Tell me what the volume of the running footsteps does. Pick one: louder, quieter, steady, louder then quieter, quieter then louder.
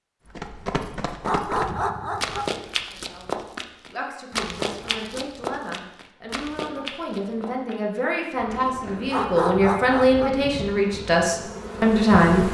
quieter.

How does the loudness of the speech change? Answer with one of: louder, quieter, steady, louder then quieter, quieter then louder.
louder.